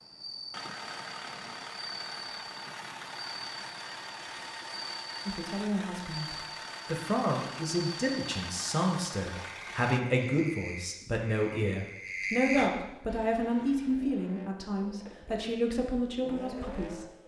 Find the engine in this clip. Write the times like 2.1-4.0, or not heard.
0.0-10.0, 13.1-17.2.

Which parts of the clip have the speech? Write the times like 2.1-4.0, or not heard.
5.2-17.2.